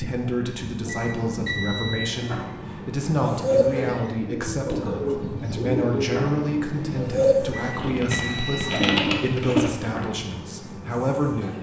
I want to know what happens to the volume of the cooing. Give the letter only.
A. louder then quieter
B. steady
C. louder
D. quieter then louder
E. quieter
C.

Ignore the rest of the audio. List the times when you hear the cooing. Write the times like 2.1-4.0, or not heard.
3.2-10.1.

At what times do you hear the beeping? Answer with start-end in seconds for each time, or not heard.
0.8-2.0, 7.5-8.9.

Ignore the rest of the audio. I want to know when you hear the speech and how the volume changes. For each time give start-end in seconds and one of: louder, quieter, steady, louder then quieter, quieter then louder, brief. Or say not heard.
0.0-11.5 steady.